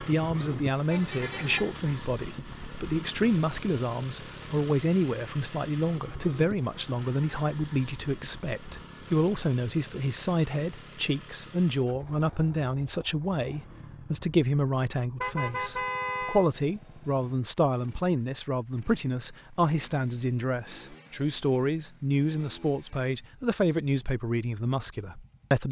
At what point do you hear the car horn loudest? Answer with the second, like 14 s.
16 s.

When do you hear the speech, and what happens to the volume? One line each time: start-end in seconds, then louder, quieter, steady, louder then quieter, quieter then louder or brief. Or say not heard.
0.1-25.6 steady.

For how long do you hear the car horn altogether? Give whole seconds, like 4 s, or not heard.
2 s.